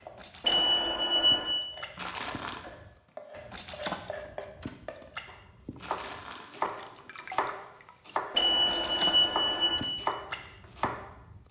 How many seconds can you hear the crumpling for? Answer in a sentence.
The crumpling can be heard for 2 seconds in total.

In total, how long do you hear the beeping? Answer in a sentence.
You can hear the beeping for 3 seconds altogether.